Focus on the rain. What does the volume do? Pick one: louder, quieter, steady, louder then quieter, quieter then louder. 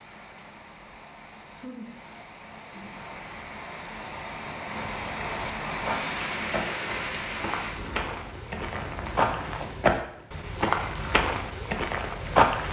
louder then quieter.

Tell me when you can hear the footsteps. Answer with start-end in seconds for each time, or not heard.
4.7-12.6.